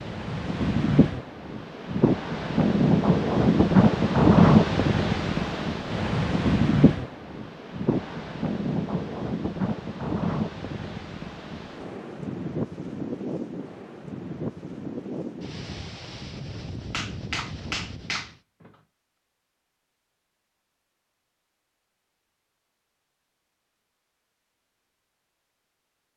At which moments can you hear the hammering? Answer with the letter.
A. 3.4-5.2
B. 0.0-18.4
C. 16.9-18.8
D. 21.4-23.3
C.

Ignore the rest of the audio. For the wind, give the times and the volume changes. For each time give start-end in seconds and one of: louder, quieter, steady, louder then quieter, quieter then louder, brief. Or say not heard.
0.0-18.4 quieter.